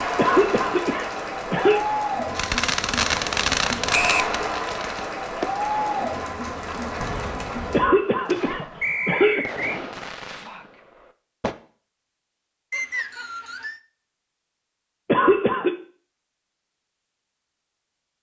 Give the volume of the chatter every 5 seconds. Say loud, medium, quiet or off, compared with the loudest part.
loud, loud, off, off.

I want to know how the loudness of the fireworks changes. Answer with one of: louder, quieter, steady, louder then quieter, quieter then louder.
quieter.